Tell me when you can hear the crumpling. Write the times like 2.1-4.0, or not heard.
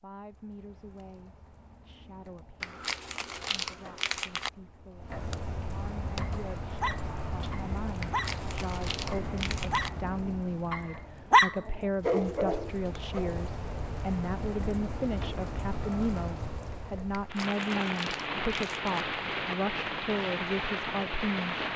2.6-4.5, 8.0-9.9, 17.1-19.1.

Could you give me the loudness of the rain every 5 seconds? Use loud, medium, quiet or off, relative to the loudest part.
quiet, medium, medium, loud, loud.